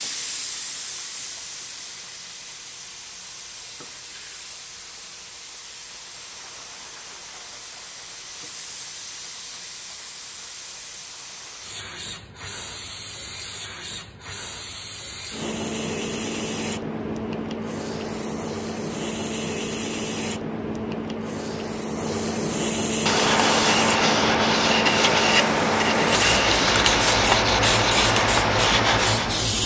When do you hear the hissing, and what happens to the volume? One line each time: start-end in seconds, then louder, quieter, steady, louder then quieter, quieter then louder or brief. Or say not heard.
0.0-29.6 louder.